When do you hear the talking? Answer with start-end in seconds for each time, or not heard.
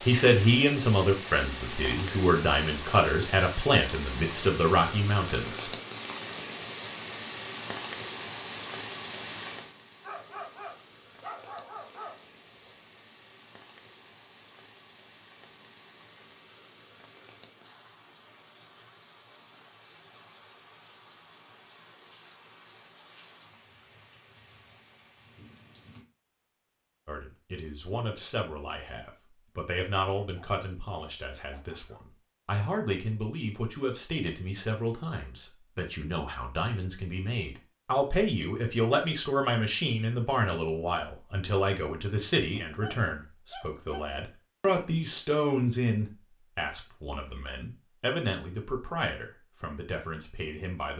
0.0-5.7, 27.1-50.9.